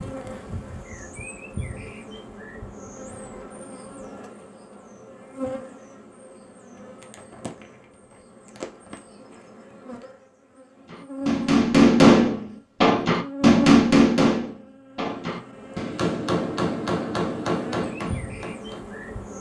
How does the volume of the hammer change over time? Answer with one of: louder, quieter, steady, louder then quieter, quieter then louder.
quieter.